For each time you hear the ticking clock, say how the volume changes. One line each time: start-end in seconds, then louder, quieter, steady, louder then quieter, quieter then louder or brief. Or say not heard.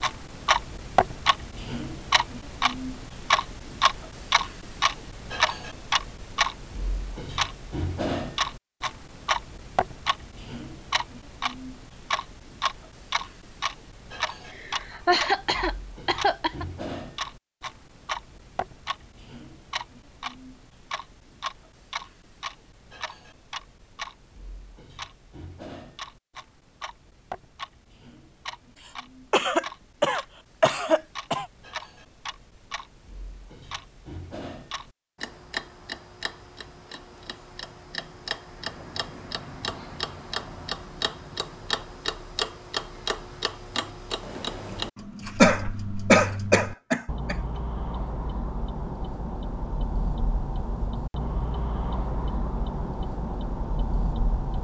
0.0-54.5 quieter then louder.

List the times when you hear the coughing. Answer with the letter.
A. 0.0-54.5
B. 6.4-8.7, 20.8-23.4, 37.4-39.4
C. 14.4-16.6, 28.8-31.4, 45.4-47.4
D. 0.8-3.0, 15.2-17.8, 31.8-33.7
C.